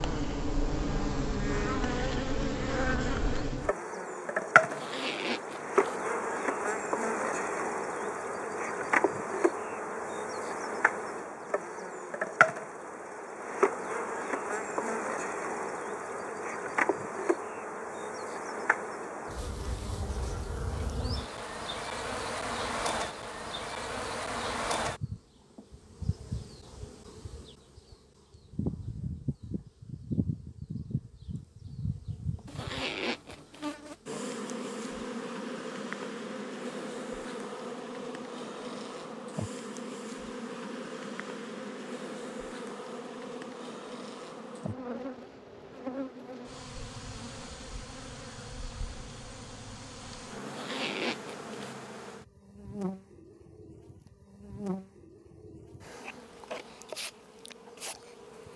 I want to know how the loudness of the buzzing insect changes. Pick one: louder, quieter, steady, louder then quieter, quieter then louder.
quieter.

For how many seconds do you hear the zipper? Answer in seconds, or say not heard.
4 s.